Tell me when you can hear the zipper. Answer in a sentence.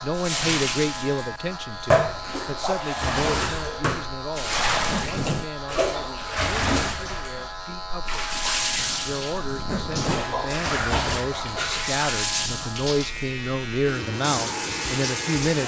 You can hear the zipper from 4.5 to 5.6 s and from 9.4 to 10.3 s.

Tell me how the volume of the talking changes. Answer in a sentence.
The volume of the talking goes down, then up.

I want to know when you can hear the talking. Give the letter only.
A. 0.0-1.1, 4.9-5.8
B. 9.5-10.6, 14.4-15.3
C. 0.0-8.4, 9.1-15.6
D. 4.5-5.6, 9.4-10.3
C.